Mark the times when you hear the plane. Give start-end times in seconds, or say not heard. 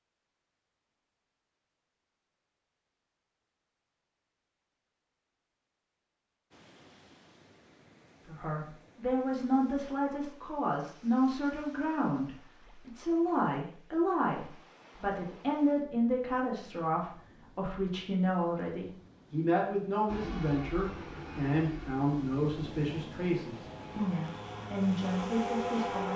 20.1-26.1.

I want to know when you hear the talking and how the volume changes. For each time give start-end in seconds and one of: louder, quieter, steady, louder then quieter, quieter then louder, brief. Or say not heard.
8.2-26.1 steady.